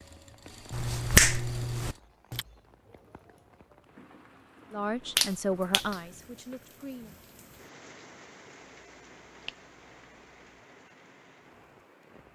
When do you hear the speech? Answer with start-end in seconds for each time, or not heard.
4.7-7.2.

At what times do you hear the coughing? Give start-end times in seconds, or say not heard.
not heard.